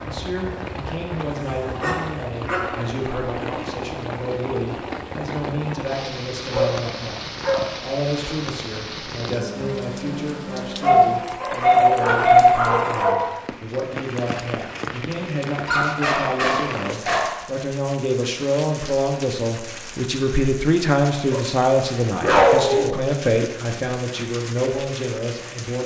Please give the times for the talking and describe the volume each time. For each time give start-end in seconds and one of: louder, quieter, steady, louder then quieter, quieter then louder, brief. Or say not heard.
0.0-25.8 louder.